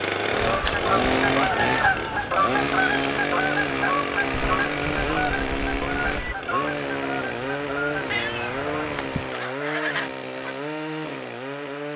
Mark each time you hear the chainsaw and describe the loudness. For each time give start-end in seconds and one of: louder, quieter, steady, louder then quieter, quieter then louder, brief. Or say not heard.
0.0-11.9 quieter.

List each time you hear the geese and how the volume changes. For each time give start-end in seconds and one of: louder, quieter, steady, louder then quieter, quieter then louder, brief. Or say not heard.
0.3-10.6 quieter.